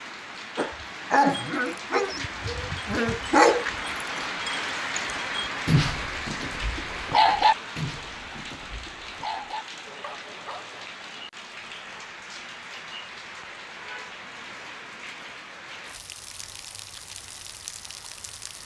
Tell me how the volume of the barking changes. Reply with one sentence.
The loudness of the barking goes down.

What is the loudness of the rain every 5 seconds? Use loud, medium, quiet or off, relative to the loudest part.
loud, loud, medium, medium.